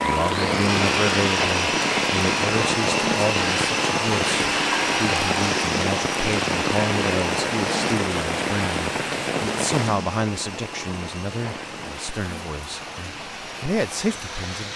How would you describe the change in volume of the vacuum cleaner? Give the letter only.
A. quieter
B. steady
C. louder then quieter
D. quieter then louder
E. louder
A.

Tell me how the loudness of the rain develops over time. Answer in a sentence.
The volume of the rain goes down.